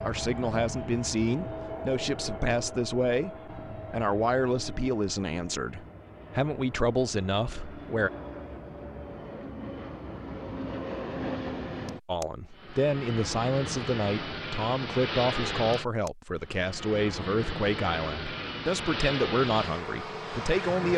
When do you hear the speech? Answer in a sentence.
You can hear the speech from 0.0 to 8.1 s and from 12.1 to 20.9 s.